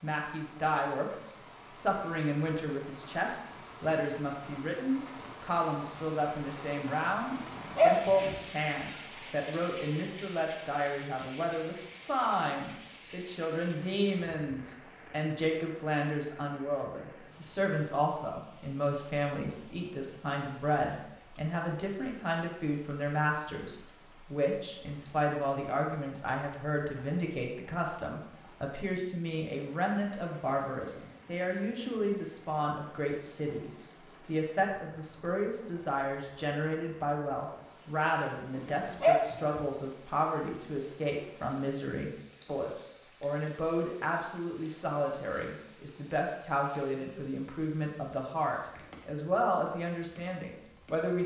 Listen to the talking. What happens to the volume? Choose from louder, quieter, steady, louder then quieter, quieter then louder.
steady.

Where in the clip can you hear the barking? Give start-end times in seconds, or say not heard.
7.3-8.3, 38.5-39.6.